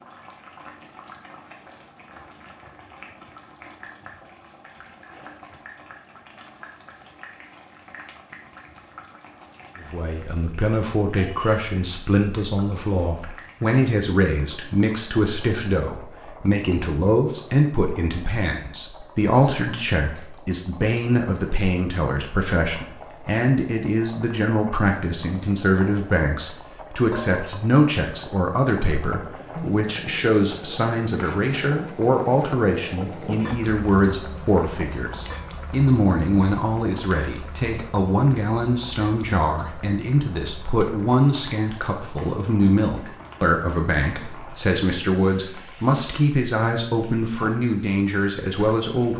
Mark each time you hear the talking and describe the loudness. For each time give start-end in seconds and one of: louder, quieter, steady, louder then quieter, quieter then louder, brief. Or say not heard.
9.8-49.1 steady.